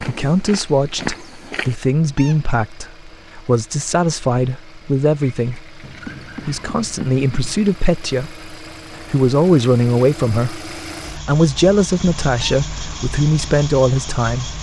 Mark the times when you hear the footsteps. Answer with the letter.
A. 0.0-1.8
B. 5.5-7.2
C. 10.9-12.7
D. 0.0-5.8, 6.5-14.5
A.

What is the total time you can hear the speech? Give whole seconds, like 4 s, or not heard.
14 s.